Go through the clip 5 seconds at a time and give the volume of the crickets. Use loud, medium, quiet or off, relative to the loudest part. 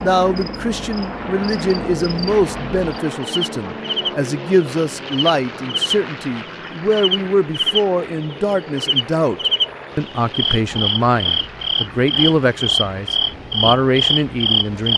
medium, loud, loud.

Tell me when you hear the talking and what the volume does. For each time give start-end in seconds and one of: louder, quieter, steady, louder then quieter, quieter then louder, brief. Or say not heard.
0.0-14.9 steady.